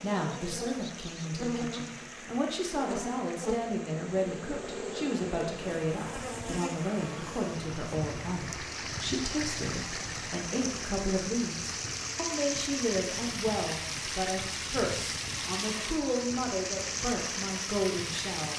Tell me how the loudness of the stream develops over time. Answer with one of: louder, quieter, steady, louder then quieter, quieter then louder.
louder.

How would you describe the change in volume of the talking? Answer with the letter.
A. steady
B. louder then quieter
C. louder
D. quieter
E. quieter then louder
A.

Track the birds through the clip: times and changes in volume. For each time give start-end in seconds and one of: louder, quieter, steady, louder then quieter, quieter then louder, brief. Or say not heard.
not heard.